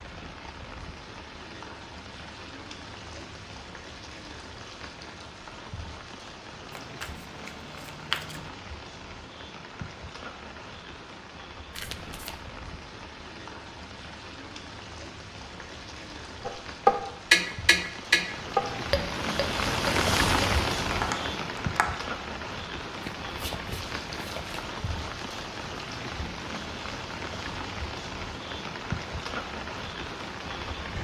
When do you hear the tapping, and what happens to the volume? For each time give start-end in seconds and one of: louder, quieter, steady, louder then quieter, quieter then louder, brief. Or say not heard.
16.4-21.9 quieter.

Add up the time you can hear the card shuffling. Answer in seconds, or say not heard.
4 s.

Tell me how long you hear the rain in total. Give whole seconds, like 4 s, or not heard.
31 s.